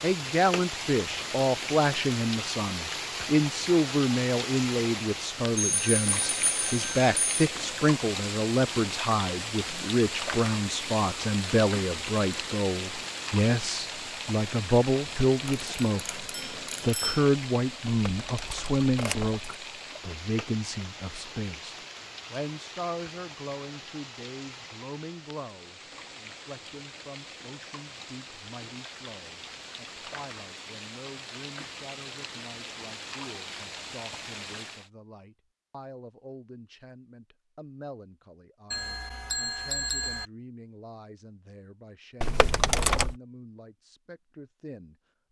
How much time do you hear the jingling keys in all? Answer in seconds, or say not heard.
3 s.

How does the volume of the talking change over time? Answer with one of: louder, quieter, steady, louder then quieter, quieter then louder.
quieter.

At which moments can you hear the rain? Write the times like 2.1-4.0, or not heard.
0.0-34.9.